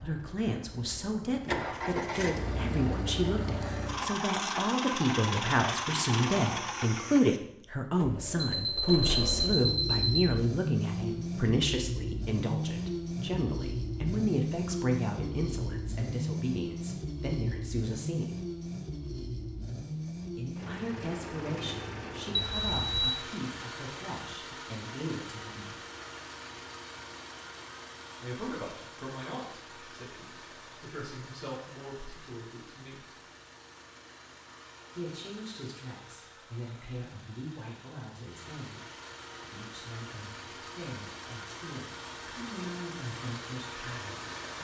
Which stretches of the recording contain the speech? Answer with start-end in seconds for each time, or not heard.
0.0-18.4, 20.4-25.8, 28.2-33.1, 35.0-38.9, 39.5-44.2.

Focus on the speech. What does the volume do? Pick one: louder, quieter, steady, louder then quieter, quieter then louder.
quieter.